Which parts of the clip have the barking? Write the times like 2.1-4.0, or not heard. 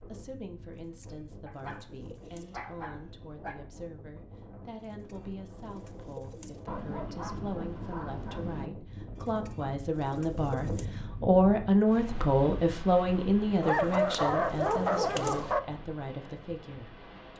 1.4-3.5, 6.7-8.7, 13.6-15.6.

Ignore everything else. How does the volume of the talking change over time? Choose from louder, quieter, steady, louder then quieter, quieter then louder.
louder then quieter.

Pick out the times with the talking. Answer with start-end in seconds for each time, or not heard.
0.1-17.3.